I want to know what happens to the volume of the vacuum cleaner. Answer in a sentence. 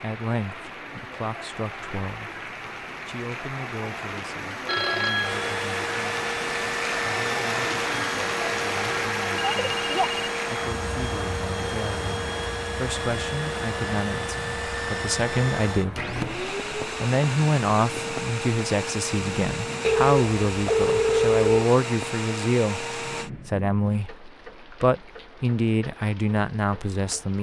The volume of the vacuum cleaner stays about the same.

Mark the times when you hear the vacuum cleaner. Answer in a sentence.
You can hear the vacuum cleaner from 5.2 to 23.3 s.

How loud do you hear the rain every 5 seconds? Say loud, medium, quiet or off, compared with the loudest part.
medium, loud, medium, medium, quiet, quiet.